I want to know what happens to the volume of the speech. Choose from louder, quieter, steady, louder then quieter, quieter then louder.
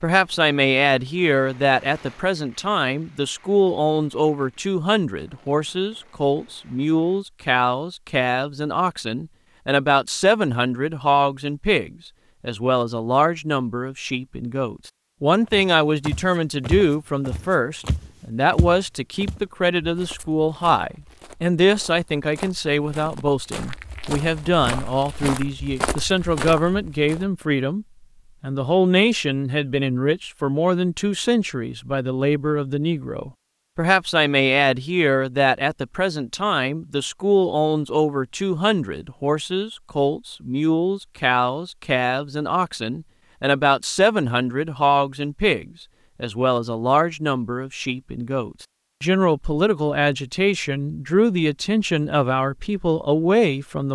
steady.